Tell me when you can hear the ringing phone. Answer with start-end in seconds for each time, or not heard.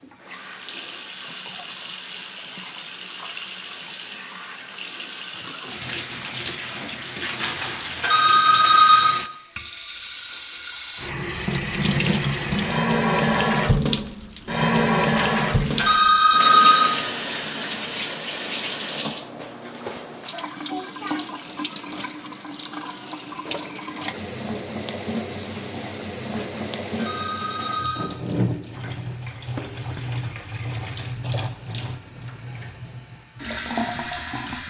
7.4-9.2, 15.2-17.0, 26.4-28.1.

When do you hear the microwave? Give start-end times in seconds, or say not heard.
not heard.